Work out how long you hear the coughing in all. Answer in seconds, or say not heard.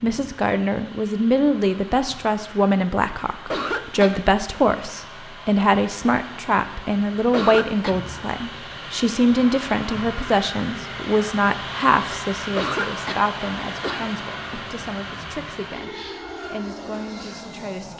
3 s.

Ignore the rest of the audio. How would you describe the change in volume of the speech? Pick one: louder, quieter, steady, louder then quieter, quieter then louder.
quieter.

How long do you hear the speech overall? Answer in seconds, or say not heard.
18 s.